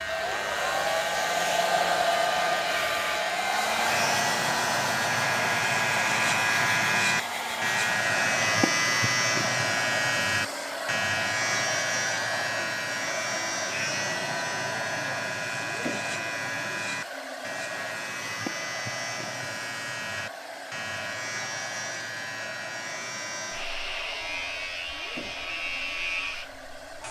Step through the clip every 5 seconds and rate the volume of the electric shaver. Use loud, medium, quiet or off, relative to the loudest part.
medium, loud, loud, medium, medium, medium.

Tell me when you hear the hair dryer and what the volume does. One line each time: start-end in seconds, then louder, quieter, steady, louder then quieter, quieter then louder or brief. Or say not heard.
0.0-27.0 quieter.